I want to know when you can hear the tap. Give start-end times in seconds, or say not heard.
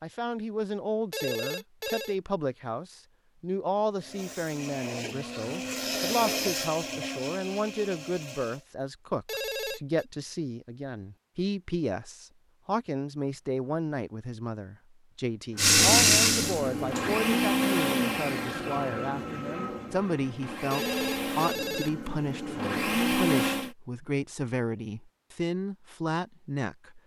15.6-17.2.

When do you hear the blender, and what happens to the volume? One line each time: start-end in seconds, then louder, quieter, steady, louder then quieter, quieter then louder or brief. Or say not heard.
4.0-8.7 louder then quieter
15.6-23.8 quieter then louder.